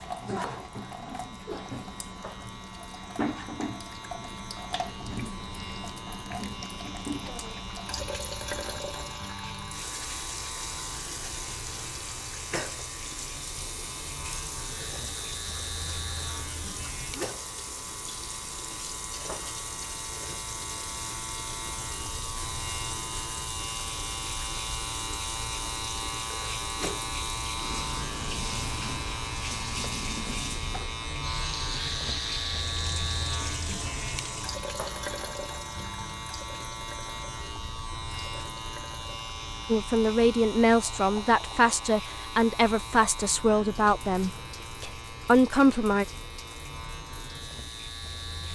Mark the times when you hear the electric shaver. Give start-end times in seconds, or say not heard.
0.0-48.5.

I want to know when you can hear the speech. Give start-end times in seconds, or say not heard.
39.6-46.0.